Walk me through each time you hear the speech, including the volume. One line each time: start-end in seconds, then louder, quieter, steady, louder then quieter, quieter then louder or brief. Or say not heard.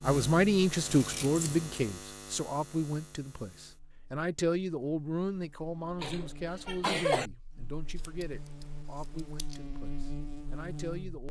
0.0-11.2 quieter.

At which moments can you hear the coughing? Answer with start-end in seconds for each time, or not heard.
6.0-7.3.